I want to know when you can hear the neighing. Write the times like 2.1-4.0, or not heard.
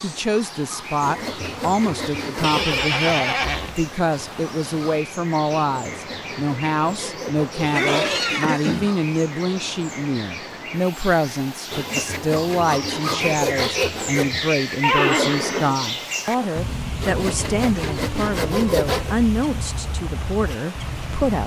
2.4-3.8, 7.7-8.9, 14.8-16.6.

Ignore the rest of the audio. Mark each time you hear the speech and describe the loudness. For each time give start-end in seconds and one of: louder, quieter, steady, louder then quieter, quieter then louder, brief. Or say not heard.
0.0-21.4 steady.